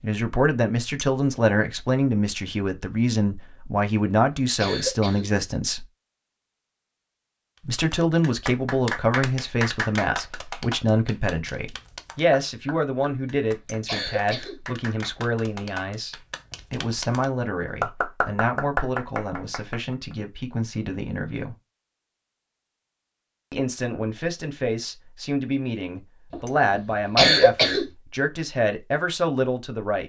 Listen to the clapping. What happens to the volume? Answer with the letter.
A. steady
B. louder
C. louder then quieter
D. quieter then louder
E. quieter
D.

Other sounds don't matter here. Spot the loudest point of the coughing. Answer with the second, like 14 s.
27 s.